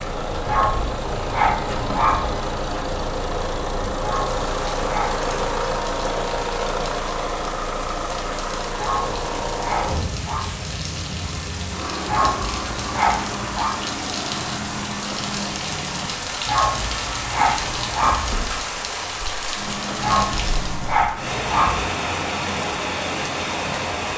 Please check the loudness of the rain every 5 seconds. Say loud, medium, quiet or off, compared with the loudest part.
medium, medium, medium, loud, loud.